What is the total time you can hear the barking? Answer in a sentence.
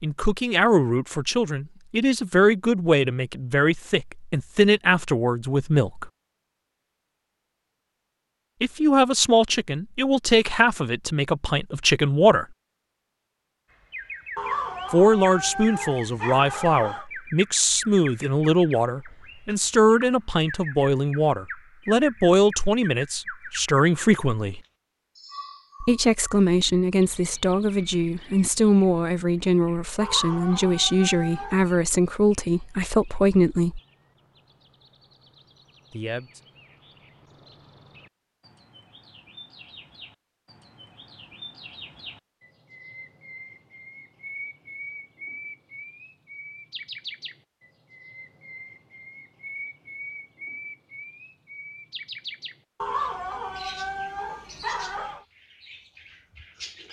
You can hear the barking for 7 seconds altogether.